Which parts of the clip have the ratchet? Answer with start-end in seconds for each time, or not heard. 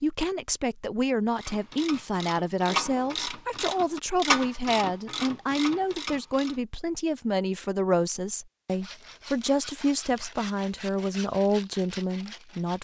1.4-6.6.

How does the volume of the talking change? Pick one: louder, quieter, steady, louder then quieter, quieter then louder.
steady.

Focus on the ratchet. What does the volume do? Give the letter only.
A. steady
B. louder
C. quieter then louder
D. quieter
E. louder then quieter
E.